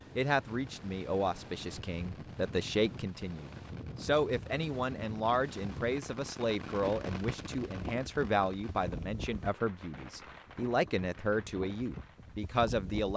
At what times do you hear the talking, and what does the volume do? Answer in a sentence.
You can hear the talking from 0.1 to 13.1 s, at a steady volume.